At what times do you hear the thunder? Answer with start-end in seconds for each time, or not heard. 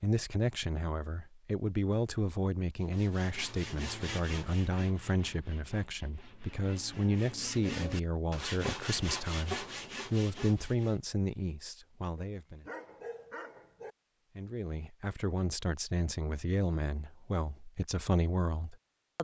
not heard.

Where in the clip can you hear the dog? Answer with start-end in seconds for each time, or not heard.
12.2-13.9.